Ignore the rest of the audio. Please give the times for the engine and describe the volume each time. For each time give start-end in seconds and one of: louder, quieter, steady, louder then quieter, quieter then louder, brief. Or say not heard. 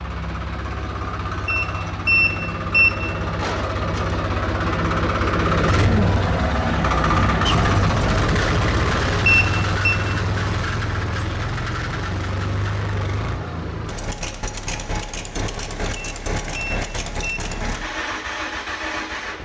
0.0-19.3 louder then quieter.